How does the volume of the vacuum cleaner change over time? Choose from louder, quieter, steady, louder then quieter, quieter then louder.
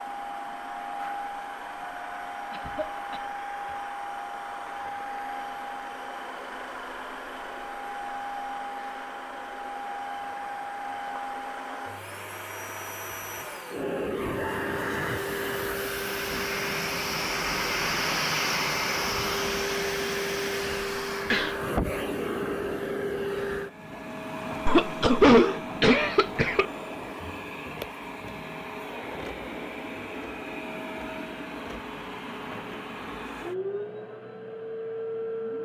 louder then quieter.